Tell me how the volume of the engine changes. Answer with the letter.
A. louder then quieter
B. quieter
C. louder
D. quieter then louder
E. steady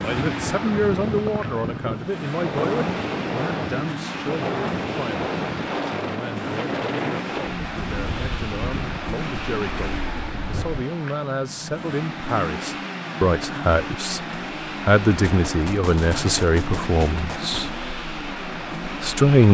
E.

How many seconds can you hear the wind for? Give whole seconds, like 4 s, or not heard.
11 s.